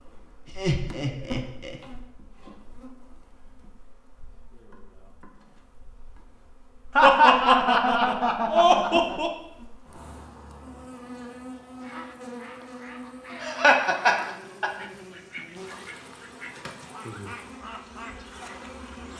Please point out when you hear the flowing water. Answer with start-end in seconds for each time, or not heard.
not heard.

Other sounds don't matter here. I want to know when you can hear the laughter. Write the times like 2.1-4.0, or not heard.
0.5-1.8, 7.0-9.3, 13.4-14.7.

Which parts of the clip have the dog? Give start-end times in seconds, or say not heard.
not heard.